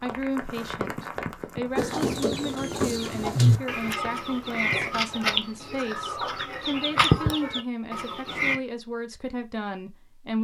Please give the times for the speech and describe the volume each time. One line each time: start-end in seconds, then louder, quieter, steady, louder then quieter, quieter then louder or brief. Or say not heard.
0.0-10.3 steady.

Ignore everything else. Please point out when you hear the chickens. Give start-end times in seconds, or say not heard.
1.8-8.6.